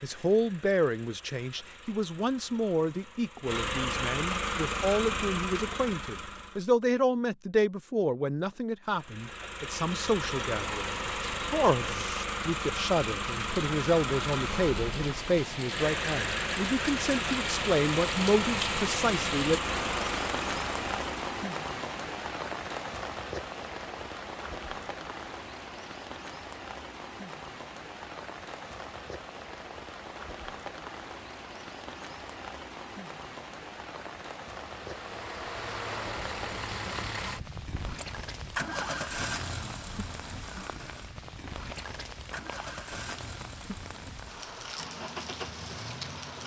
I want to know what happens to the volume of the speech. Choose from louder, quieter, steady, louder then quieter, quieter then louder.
steady.